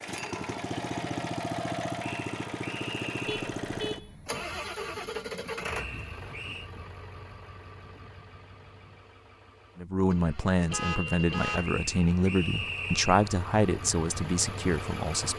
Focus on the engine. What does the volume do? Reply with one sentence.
The volume of the engine goes down, then up.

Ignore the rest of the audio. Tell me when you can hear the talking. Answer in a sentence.
The talking can be heard from 9.8 to 15.3 s.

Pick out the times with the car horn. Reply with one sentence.
The car horn can be heard from 3.2 to 4.5 s and from 10.7 to 11.8 s.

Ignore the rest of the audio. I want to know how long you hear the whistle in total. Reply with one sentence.
You can hear the whistle for 4 seconds altogether.